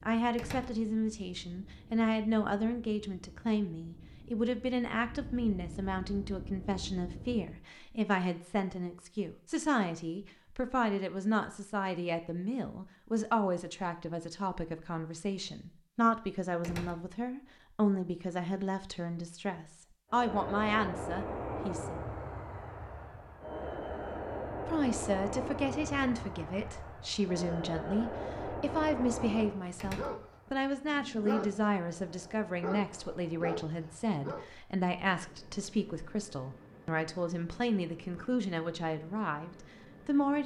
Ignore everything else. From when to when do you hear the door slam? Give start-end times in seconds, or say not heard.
0.3-0.8, 16.6-17.1, 29.8-30.3.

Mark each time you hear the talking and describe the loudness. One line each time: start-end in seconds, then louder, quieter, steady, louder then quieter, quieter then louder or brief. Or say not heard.
0.0-22.0 steady
24.6-40.4 steady.